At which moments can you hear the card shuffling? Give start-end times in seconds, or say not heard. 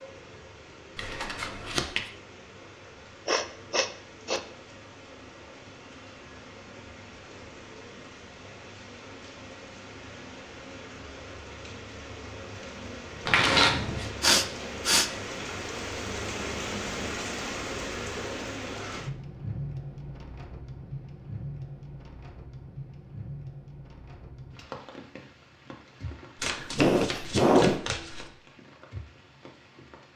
0.9-2.1, 13.2-14.1, 26.4-28.3.